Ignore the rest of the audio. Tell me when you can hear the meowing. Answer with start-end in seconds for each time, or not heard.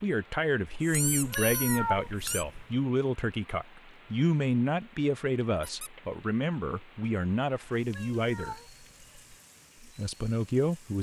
1.1-2.8, 7.8-9.4.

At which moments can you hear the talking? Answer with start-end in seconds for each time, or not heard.
0.0-8.6, 9.8-10.9.